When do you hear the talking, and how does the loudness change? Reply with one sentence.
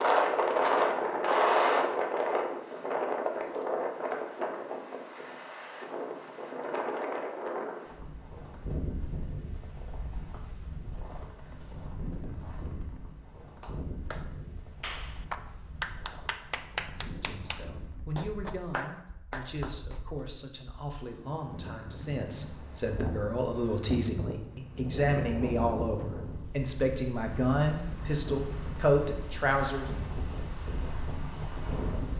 You can hear the talking from 17.1 to 29.9 s, getting louder.